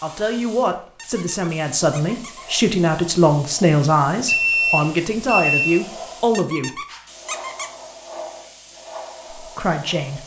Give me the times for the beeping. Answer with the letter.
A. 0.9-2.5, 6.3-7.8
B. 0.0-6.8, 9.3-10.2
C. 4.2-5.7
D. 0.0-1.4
C.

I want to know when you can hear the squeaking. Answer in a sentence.
You can hear the squeaking from 0.9 to 2.5 s and from 6.3 to 7.8 s.